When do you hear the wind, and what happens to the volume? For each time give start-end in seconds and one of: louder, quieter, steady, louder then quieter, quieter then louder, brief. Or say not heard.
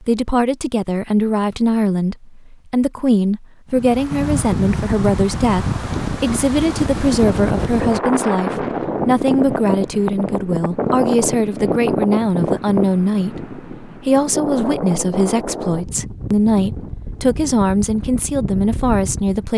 3.7-19.5 quieter.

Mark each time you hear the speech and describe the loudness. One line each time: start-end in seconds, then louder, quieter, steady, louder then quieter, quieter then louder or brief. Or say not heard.
0.0-19.5 steady.